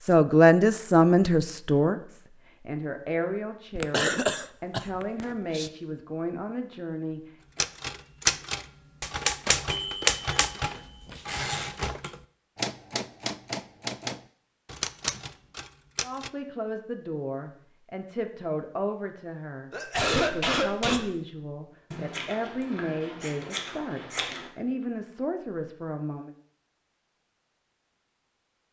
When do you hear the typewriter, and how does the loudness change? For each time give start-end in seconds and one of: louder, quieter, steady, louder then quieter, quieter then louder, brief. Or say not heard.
7.5-16.3 quieter.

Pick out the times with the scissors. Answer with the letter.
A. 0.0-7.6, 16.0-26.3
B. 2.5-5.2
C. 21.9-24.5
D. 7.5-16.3
C.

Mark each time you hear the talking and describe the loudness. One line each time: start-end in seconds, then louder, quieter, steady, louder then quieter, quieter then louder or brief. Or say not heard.
0.0-7.6 quieter
16.0-26.3 steady.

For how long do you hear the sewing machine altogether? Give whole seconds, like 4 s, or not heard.
not heard.